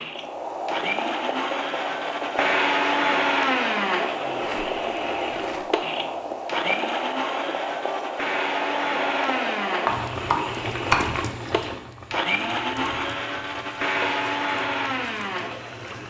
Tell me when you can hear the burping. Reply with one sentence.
The burping can't be heard in this clip.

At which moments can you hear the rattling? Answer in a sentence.
The rattling can be heard from 4.3 to 5.8 s.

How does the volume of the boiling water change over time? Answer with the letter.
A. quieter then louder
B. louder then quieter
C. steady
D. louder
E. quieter
E.